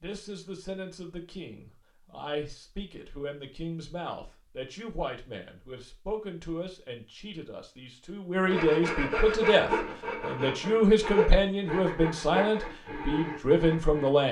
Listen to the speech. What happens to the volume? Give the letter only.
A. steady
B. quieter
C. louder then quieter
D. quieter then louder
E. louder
E.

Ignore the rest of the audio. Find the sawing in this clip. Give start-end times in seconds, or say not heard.
8.4-14.1.